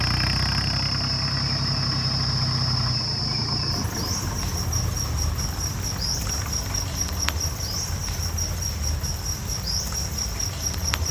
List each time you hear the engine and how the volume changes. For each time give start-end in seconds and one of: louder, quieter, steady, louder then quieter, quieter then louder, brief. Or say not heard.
0.0-11.0 quieter.